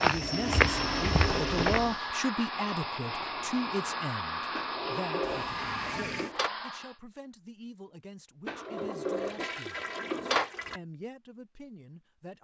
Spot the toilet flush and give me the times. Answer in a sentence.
You can hear the toilet flush from 0.2 to 1.8 s, from 5.2 to 6.3 s and from 8.8 to 10.8 s.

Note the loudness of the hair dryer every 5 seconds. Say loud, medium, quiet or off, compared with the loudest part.
loud, loud, off.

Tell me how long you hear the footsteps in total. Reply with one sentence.
You can hear the footsteps for 2 seconds altogether.